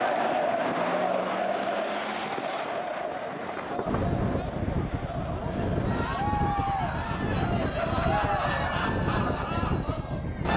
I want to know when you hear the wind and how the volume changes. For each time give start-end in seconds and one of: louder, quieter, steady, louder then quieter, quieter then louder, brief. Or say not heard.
0.1-10.5 louder.